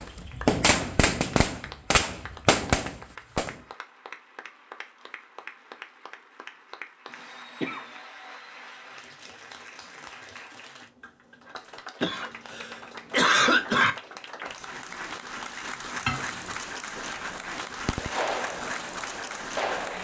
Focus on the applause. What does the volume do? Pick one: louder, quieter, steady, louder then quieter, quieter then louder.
louder.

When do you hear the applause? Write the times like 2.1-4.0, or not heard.
0.0-19.9.